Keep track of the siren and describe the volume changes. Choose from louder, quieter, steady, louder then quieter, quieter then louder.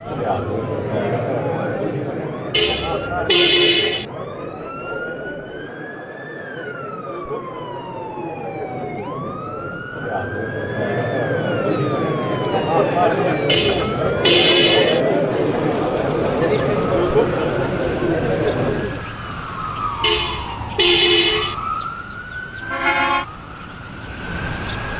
louder.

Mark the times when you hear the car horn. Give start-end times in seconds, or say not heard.
2.5-4.0, 13.4-15.0, 20.0-21.6.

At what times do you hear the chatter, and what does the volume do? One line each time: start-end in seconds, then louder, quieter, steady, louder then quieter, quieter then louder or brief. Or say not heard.
0.0-19.1 quieter then louder.